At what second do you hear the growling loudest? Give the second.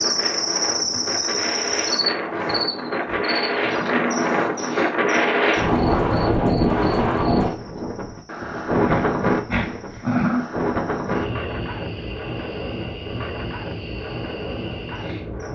10 s.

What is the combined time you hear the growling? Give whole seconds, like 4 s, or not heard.
4 s.